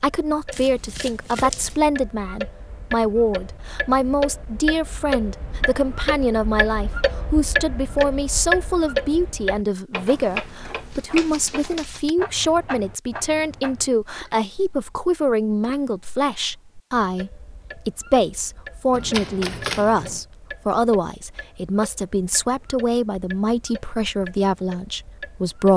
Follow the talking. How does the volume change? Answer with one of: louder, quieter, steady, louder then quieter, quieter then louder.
steady.